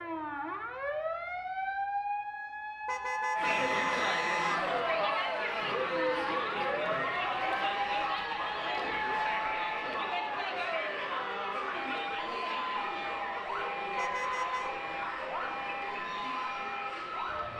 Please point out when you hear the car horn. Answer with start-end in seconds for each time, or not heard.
2.9-4.5, 13.9-14.7.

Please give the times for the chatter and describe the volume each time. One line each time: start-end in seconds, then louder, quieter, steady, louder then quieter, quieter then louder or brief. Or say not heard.
3.4-17.5 quieter.